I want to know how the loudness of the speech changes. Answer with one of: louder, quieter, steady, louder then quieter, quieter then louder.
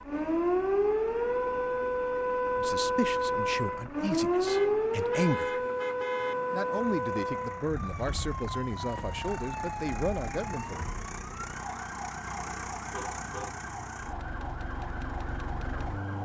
steady.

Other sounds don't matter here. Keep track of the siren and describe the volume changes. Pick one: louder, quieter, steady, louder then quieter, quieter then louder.
quieter.